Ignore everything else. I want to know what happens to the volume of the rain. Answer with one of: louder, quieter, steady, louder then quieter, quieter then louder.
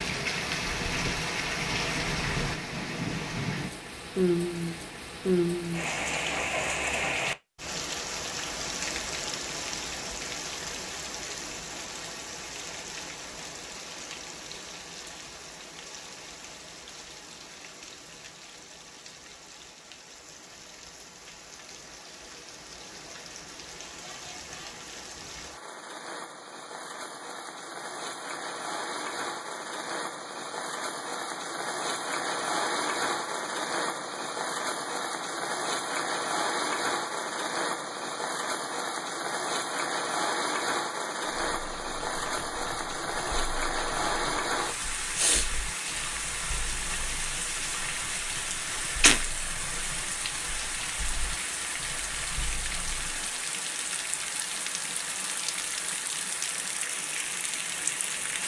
quieter then louder.